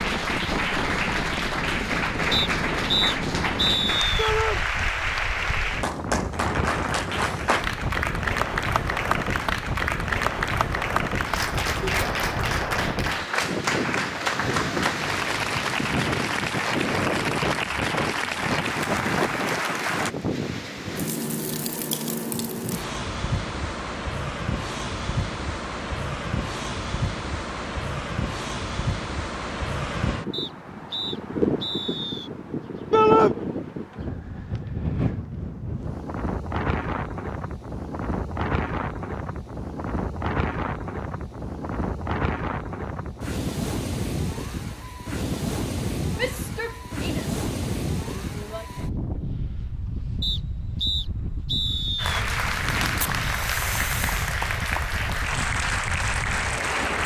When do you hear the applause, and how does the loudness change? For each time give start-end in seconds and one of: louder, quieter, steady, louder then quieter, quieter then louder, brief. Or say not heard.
0.0-20.1 steady
52.0-57.0 steady.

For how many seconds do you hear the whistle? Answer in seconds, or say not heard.
6 s.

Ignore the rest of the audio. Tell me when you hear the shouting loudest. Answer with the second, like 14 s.
33 s.